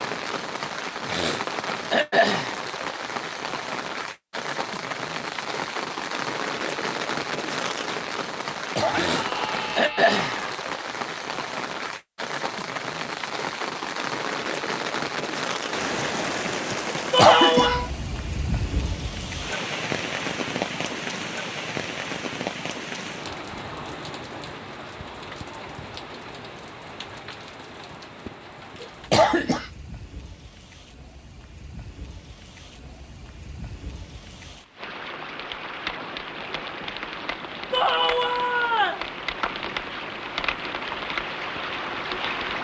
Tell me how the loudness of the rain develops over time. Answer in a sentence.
The loudness of the rain goes down, then up.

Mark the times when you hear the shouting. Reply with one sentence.
The shouting can be heard from 8.9 to 10.6 s, from 17.1 to 17.9 s and from 37.7 to 39.0 s.